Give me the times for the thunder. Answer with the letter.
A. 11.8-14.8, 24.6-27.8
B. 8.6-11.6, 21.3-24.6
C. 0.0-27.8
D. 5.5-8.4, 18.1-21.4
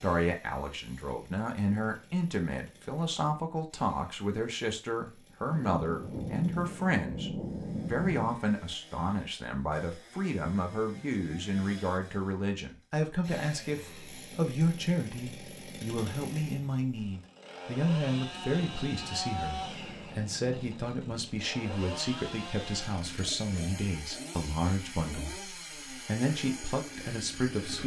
D.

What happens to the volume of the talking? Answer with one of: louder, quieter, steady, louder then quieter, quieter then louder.
steady.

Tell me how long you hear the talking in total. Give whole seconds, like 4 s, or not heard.
28 s.